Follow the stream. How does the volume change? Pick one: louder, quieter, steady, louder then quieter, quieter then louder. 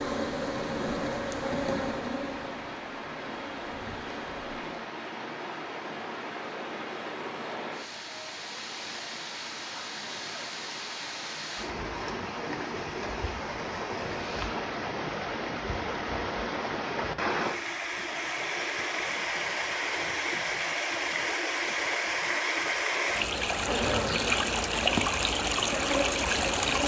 louder.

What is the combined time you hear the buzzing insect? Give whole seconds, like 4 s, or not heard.
8 s.